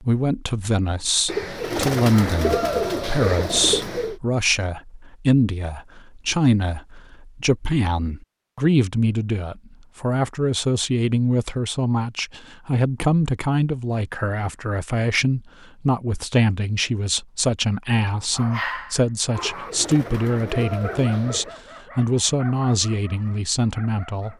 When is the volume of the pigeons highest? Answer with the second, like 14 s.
3 s.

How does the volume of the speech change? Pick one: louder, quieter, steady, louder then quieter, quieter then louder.
steady.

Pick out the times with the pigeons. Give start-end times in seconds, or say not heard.
1.2-4.2, 19.4-21.6.